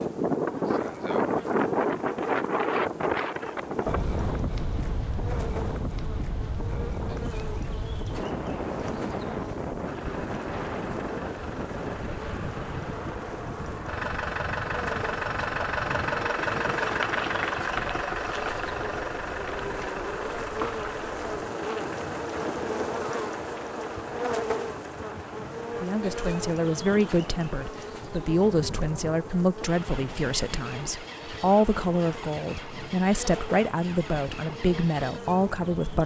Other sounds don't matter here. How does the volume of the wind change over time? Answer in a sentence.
The volume of the wind goes down.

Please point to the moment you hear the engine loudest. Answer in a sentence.
The loudest moment of the engine is at 17 seconds.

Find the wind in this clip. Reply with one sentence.
You can hear the wind from 0.0 to 36.0 s.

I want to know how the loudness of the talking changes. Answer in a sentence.
The loudness of the talking stays about the same.